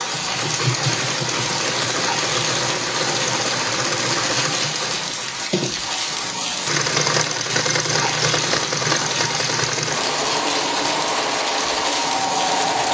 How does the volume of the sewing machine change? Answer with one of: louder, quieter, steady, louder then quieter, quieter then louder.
steady.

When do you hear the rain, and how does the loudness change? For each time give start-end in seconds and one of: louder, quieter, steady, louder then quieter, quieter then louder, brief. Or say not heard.
0.0-12.8 steady.